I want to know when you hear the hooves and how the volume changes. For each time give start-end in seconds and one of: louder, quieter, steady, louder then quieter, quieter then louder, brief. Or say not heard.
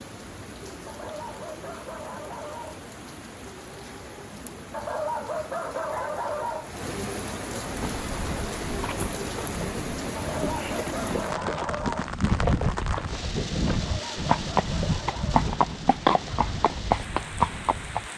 7.6-18.1 louder.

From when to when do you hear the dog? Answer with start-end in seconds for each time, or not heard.
0.8-2.9, 4.7-6.7, 10.2-12.1, 13.7-15.5.